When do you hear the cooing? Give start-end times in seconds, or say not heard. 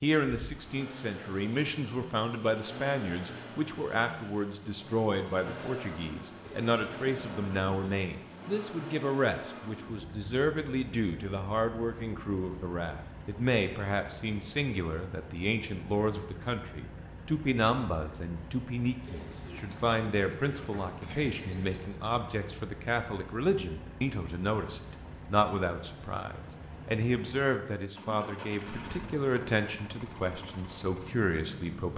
6.4-8.1, 19.1-22.0.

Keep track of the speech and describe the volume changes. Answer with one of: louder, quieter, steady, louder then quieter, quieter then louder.
steady.